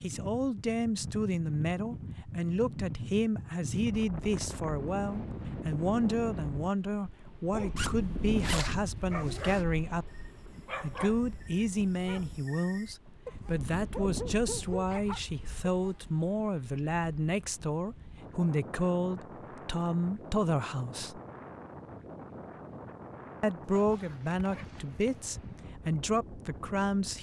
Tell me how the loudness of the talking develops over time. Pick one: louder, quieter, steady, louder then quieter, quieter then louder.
steady.